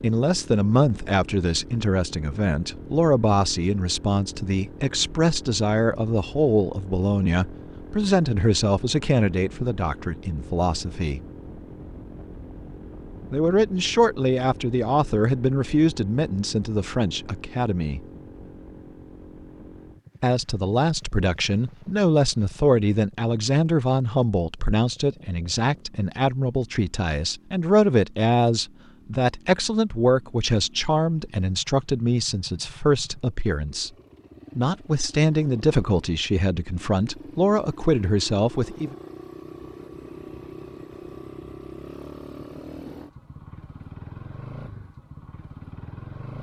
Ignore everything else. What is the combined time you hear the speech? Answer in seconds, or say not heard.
34 s.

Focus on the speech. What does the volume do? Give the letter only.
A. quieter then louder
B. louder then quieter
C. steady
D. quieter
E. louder
C.